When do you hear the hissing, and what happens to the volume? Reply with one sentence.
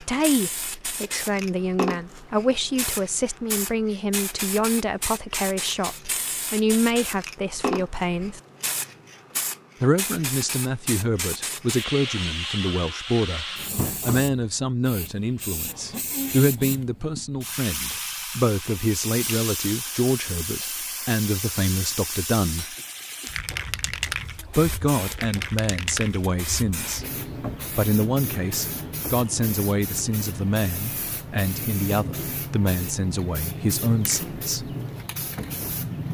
The hissing can be heard from 0.0 to 36.0 s, at a steady volume.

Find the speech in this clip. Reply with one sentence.
The speech can be heard from 0.0 to 8.4 s, from 9.8 to 22.8 s, from 24.6 to 27.1 s and from 27.8 to 34.7 s.